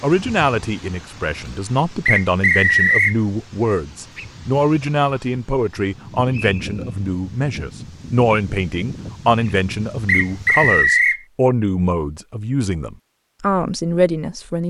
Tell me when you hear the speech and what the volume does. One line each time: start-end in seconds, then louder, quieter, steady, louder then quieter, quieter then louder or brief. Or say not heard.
0.0-14.6 steady.